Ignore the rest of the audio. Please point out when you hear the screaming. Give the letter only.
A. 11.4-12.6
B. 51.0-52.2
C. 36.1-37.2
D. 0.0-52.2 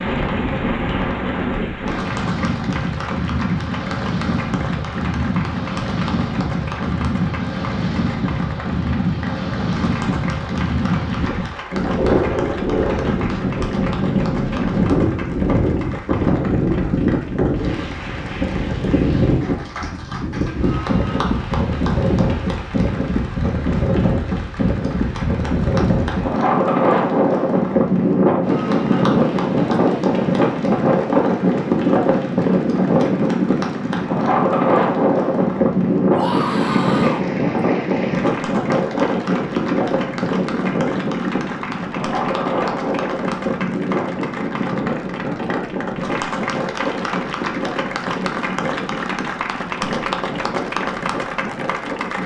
C.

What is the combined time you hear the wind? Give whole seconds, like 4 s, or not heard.
52 s.